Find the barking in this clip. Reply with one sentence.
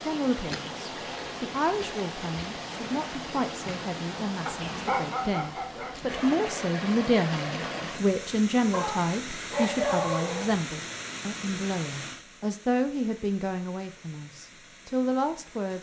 You can hear the barking from 4.5 to 6.3 s and from 8.7 to 10.6 s.